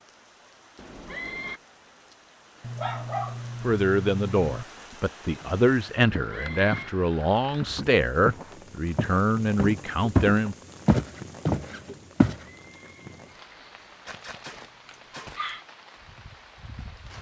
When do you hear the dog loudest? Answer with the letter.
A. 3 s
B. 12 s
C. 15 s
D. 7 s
A.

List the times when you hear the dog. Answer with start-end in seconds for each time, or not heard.
2.6-4.7, 14.1-15.7.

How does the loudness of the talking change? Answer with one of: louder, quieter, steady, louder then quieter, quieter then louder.
steady.